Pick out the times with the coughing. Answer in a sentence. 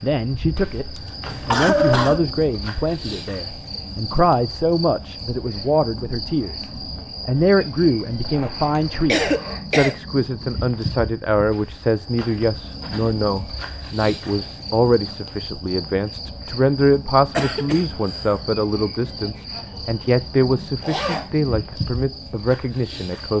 You can hear the coughing from 0.9 to 2.2 s, from 9.1 to 9.9 s and from 17.4 to 18.4 s.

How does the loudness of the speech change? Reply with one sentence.
The loudness of the speech stays about the same.